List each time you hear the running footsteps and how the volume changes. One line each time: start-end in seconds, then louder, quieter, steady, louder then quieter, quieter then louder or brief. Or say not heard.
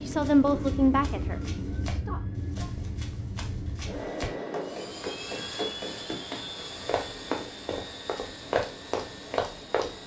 0.1-9.9 louder.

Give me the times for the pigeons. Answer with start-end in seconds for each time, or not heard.
not heard.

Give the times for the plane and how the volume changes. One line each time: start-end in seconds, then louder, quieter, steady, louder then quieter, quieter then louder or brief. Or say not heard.
0.0-10.0 quieter.